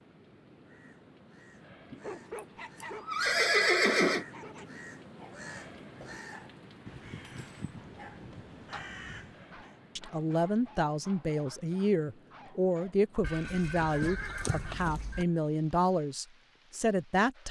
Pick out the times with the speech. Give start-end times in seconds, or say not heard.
9.9-17.4.